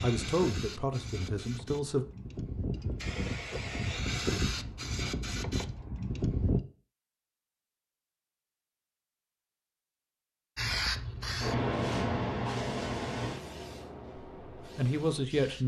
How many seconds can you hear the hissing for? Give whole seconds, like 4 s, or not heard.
12 s.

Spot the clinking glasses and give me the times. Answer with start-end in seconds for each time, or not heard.
not heard.